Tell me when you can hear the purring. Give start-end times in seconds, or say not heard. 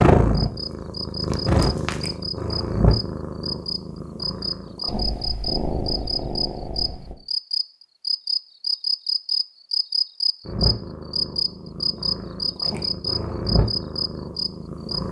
0.0-7.2, 10.4-15.0.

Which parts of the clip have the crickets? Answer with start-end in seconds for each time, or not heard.
0.3-15.0.